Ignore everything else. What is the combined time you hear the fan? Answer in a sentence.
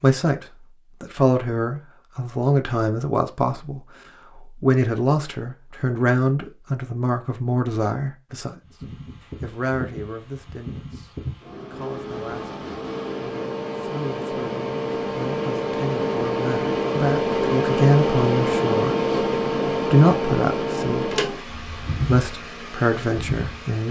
The fan can be heard for 15 seconds in total.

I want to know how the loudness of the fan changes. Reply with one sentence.
The loudness of the fan goes up, then down.